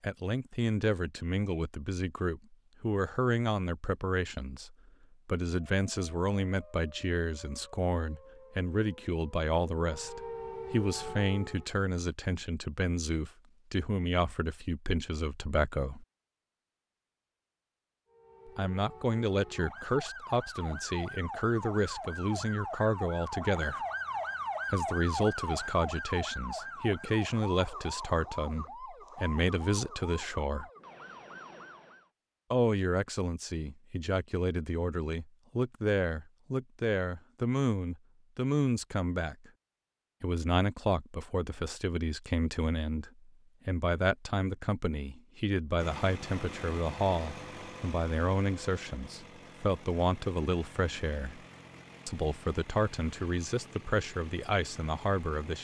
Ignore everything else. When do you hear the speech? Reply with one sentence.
You can hear the speech from 0.0 to 16.1 s, from 18.4 to 23.8 s, from 24.7 to 30.6 s, from 32.5 to 39.5 s, from 40.2 to 51.4 s and from 52.0 to 55.5 s.